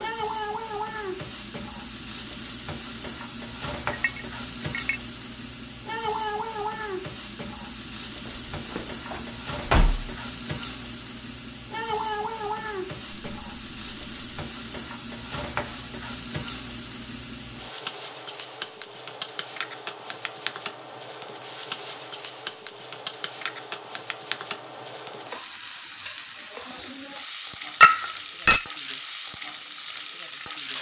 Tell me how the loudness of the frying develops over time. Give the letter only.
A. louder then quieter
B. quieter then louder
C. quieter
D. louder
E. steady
E.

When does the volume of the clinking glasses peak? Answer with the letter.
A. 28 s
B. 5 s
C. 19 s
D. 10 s
A.